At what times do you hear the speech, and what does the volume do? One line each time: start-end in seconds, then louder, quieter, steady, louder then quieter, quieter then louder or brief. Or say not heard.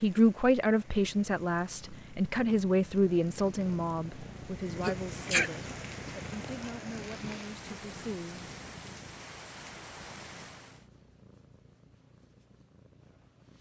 0.0-8.4 quieter.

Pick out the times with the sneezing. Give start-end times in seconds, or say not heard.
4.8-5.5.